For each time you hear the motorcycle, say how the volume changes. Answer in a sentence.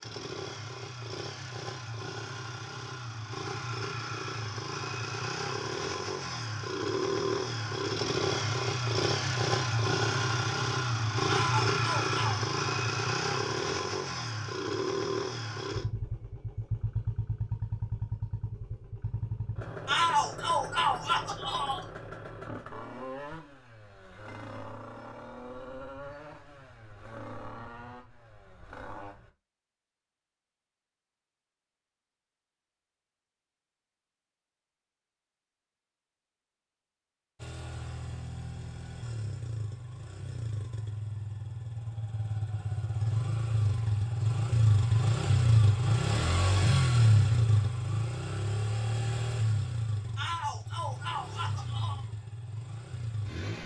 You can hear the motorcycle from 0.0 to 29.3 s, getting louder then quieter; and from 37.4 to 53.6 s, getting louder then quieter.